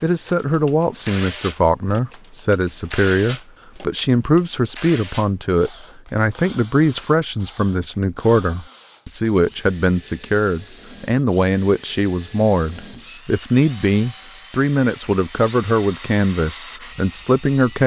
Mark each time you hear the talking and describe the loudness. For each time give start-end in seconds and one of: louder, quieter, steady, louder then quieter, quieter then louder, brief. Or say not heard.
0.0-17.8 steady.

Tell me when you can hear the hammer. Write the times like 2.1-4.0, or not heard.
not heard.